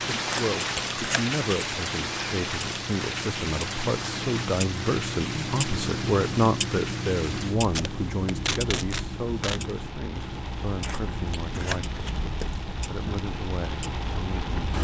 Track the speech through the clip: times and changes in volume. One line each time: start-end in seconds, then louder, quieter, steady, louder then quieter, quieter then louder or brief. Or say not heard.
0.2-11.9 louder then quieter
12.8-14.5 brief.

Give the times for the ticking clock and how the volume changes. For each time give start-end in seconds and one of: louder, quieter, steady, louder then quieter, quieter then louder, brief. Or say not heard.
0.0-14.7 louder then quieter.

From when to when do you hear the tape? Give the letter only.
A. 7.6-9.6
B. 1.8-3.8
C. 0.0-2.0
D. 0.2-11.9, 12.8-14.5
A.